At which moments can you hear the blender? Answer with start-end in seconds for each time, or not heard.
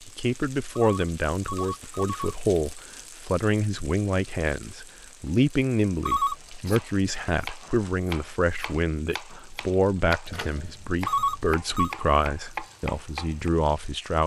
not heard.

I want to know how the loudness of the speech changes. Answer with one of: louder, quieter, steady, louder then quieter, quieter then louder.
steady.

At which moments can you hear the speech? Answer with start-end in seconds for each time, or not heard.
0.1-14.2.